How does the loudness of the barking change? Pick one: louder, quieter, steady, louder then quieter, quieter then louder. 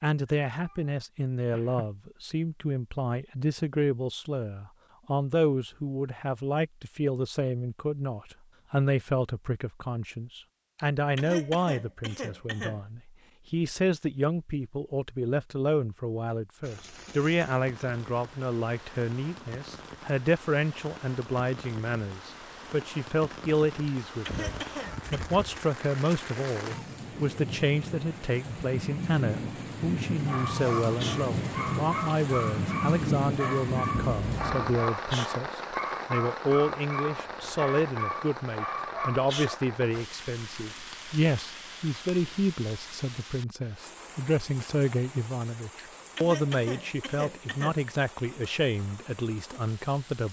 steady.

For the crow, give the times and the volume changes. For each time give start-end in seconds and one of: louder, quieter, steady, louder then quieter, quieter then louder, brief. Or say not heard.
not heard.